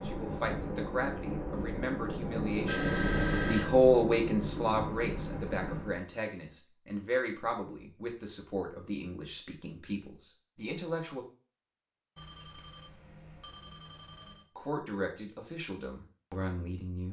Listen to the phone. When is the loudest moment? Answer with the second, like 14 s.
3 s.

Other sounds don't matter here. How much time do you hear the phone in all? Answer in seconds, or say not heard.
3 s.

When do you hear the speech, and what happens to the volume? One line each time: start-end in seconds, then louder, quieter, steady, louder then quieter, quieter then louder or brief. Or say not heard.
0.0-11.2 louder then quieter
14.6-17.0 brief.